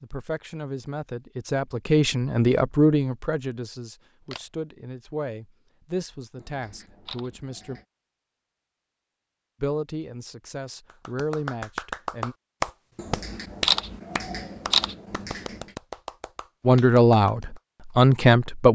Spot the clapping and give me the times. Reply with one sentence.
You can hear the clapping from 10.8 to 17.6 s.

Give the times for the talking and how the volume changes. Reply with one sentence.
You can hear the talking from 0.0 to 7.8 s, getting louder then quieter; briefly from 9.6 to 12.3 s; and briefly from 16.6 to 18.7 s.